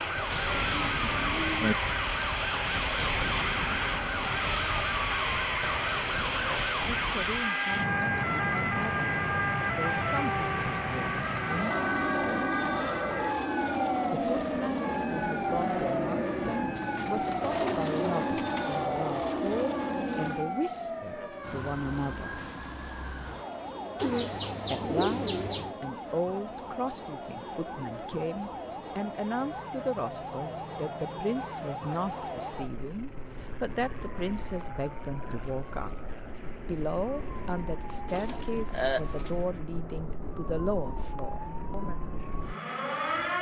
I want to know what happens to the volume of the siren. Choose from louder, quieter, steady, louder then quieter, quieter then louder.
quieter.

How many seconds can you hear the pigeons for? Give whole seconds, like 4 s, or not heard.
6 s.